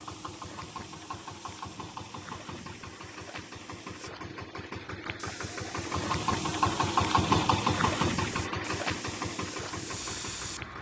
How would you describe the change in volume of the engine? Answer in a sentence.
The volume of the engine goes up, then down.